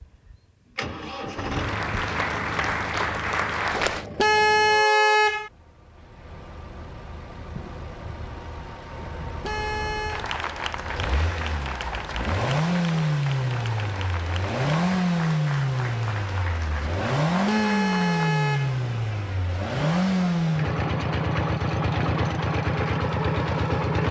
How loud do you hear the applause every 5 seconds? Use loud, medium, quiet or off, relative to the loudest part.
loud, off, medium, medium, off.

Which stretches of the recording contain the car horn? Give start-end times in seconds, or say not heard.
4.2-5.5, 9.4-10.2, 17.4-18.8.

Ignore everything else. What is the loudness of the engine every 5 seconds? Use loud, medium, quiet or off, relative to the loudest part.
medium, quiet, loud, loud, loud.